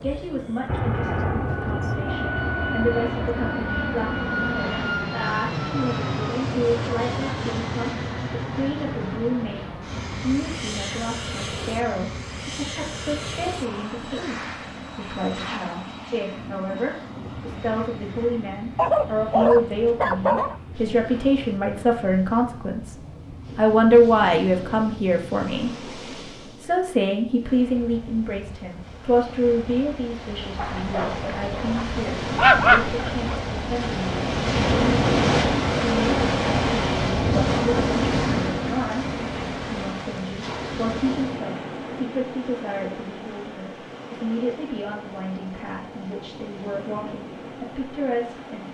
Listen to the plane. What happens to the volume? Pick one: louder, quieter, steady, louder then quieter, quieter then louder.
quieter.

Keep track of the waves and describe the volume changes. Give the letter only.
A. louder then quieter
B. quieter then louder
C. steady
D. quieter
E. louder
A.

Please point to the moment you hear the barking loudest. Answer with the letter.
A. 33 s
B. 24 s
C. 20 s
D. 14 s
A.